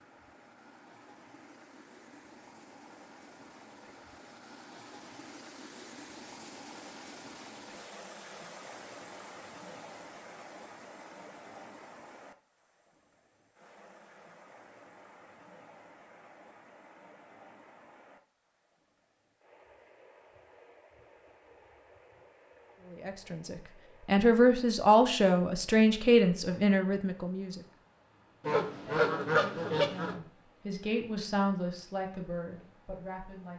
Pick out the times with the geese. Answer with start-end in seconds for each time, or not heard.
28.4-30.1.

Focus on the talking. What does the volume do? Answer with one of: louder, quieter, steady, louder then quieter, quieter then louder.
quieter.